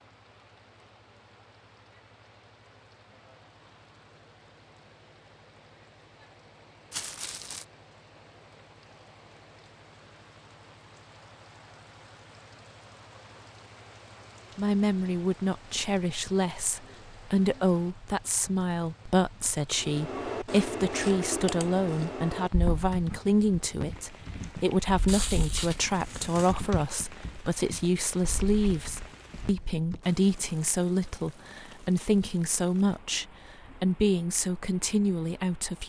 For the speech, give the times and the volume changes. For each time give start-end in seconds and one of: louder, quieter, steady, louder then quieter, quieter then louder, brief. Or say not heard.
14.6-35.8 steady.